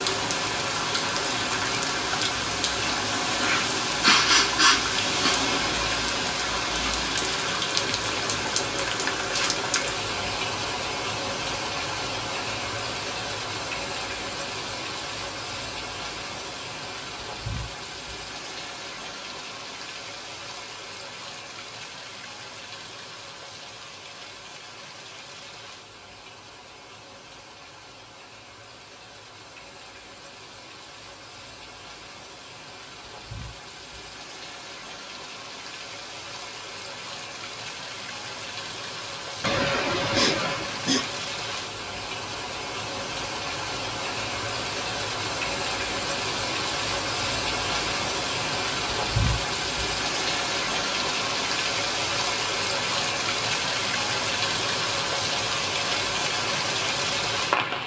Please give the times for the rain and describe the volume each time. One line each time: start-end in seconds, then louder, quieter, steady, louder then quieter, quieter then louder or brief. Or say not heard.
0.0-57.8 quieter then louder.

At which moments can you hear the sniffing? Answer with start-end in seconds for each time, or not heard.
3.4-5.4, 39.4-41.2.